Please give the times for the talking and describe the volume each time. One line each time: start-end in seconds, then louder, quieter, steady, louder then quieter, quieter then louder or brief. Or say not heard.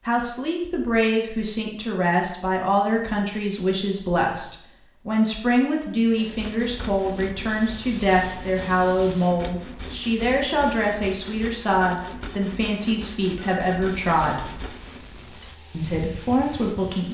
0.1-14.5 steady
15.7-17.0 brief.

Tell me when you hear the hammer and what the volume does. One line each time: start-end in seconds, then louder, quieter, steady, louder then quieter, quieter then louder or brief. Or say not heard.
not heard.